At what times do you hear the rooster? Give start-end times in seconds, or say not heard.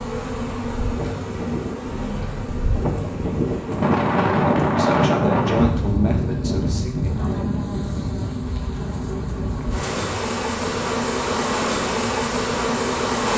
not heard.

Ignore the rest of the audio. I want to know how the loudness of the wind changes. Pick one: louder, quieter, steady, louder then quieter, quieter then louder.
louder then quieter.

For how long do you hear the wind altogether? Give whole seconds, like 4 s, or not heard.
13 s.